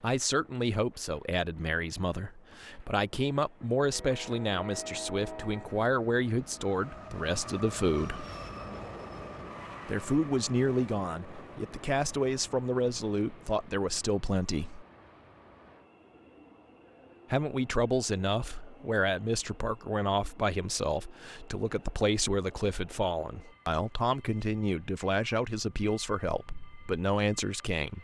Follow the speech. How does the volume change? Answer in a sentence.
The volume of the speech stays about the same.